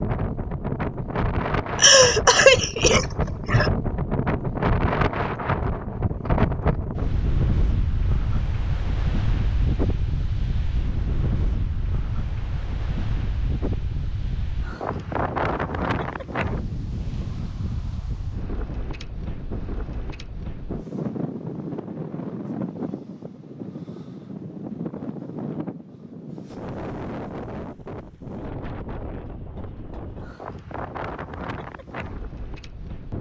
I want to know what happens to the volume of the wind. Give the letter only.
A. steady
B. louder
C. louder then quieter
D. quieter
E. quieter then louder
D.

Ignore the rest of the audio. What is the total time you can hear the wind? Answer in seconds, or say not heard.
33 s.